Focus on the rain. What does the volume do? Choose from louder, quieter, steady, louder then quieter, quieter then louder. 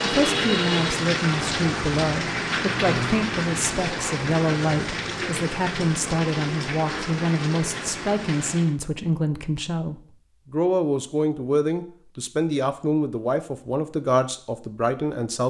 quieter.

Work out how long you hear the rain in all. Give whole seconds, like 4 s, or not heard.
9 s.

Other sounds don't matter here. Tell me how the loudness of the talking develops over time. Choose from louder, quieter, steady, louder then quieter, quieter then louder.
steady.